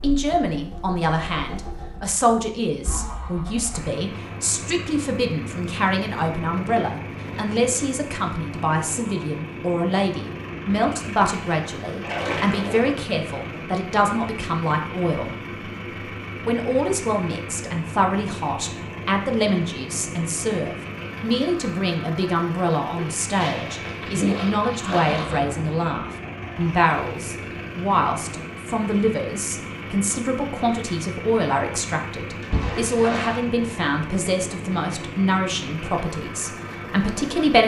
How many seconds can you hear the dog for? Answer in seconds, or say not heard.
not heard.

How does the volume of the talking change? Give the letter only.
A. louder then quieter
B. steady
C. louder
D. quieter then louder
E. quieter
B.